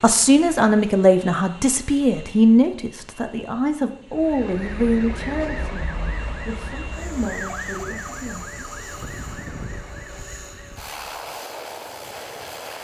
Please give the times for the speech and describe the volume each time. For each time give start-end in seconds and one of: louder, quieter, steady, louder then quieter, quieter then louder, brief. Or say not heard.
0.0-8.7 quieter.